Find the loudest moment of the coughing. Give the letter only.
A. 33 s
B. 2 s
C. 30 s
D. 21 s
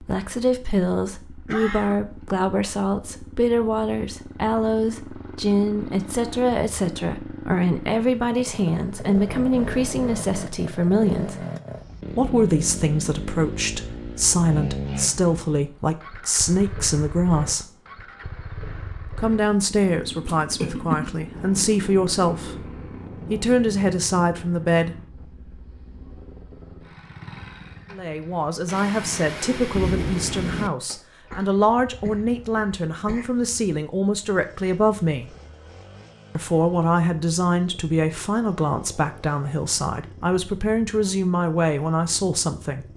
D.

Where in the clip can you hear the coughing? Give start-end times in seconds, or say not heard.
1.4-1.9, 20.2-21.1, 31.2-33.2.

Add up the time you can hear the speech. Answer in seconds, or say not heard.
37 s.